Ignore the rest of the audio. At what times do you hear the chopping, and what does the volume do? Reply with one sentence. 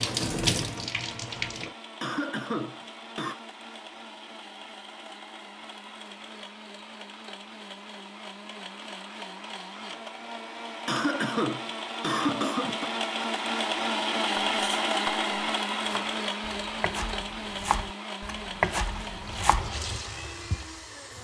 You can hear the chopping from 14.4 to 19.7 s, getting quieter then louder.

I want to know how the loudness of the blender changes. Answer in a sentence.
The loudness of the blender goes up, then down.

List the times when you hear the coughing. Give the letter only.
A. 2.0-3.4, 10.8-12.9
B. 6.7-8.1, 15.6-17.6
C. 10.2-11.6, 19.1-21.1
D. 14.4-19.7
A.